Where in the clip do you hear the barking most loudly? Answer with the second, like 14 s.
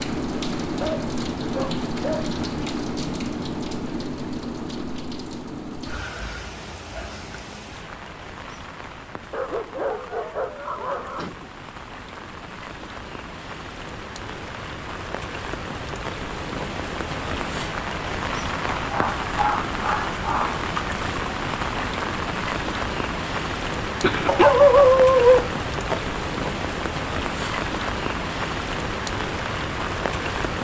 25 s.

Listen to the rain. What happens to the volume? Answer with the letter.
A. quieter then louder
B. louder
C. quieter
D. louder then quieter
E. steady
A.